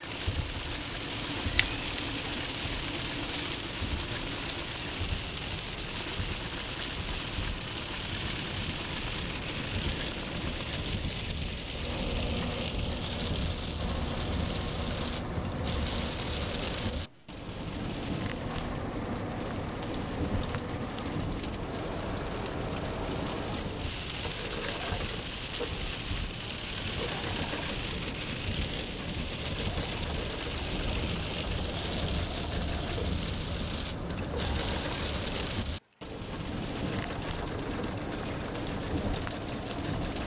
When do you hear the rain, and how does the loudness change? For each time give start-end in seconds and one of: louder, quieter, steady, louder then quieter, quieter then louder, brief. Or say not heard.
0.0-40.2 steady.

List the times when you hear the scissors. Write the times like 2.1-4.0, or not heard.
1.2-1.9.